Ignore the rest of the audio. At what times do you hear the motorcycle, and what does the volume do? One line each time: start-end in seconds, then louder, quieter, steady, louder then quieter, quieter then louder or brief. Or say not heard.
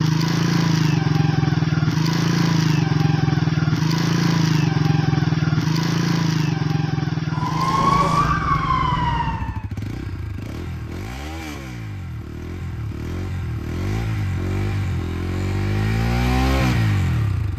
0.0-17.5 quieter then louder.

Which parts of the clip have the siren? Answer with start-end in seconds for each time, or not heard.
7.3-9.7.